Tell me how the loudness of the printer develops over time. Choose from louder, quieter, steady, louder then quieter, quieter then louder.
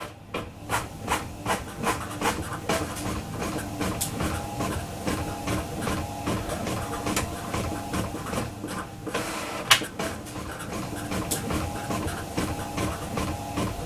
steady.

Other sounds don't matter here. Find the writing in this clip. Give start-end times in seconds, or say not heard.
1.4-13.2.